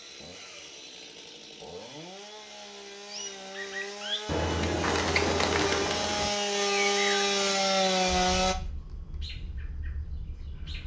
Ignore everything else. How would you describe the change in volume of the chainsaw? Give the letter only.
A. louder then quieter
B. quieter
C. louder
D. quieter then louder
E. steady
C.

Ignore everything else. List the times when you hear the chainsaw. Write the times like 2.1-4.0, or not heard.
0.0-8.6.